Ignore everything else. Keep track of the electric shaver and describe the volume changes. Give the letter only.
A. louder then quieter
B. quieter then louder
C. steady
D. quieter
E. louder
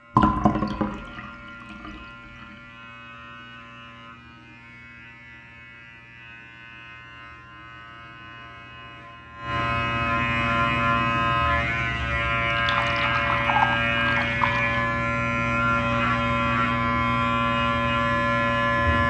E.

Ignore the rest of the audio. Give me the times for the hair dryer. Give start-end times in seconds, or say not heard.
not heard.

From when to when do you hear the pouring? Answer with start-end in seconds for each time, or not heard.
0.1-2.0, 12.5-14.8.